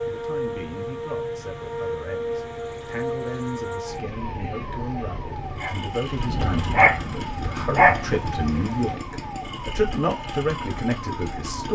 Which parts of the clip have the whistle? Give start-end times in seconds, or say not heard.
not heard.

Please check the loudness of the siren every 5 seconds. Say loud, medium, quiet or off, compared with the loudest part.
loud, medium, medium.